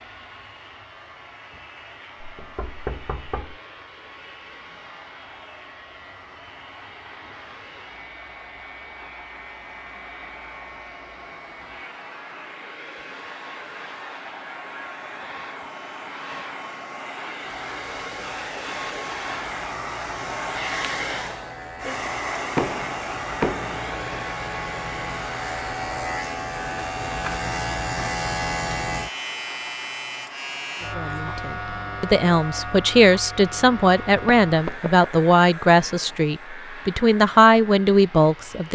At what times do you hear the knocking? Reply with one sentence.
You can hear the knocking from 2.2 to 3.6 s, from 22.6 to 23.9 s and from 34.0 to 35.1 s.